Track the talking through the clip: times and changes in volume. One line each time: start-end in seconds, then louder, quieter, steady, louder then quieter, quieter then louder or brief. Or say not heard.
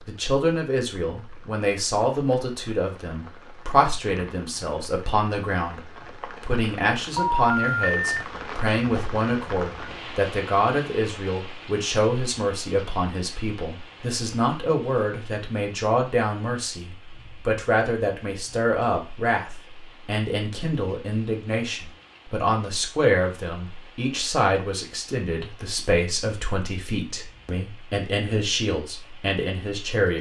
0.0-30.1 steady.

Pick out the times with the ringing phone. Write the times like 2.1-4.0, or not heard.
7.2-8.2.